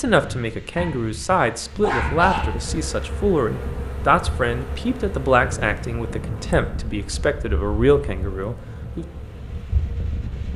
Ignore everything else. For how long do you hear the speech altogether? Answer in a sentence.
The speech can be heard for 9 seconds in total.